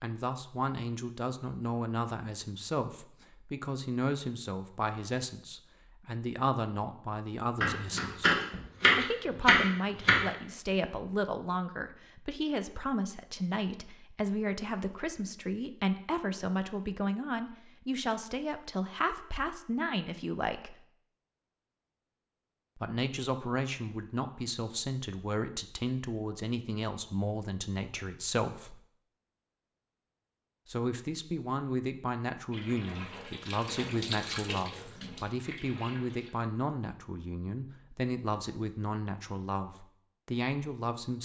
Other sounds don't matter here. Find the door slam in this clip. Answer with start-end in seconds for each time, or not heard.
not heard.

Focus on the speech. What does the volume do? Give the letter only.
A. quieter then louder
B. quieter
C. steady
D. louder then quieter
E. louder
C.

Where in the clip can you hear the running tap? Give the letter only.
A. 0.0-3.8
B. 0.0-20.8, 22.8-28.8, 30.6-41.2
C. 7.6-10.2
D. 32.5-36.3
D.